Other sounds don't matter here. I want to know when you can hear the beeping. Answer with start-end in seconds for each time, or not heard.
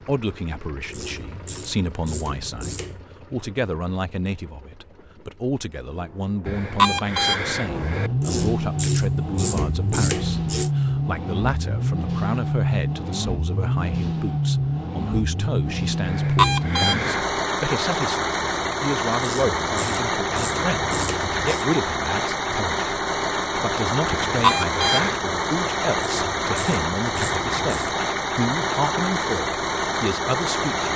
6.5-8.1, 16.1-17.2, 24.1-25.2.